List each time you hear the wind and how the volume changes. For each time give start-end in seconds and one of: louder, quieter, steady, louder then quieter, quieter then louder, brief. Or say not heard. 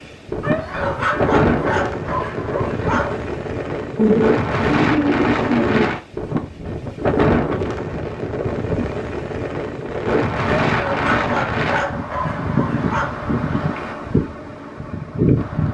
0.0-15.6 steady.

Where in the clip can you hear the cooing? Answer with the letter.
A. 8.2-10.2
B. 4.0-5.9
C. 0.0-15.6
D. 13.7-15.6
B.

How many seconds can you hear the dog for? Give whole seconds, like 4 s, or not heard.
5 s.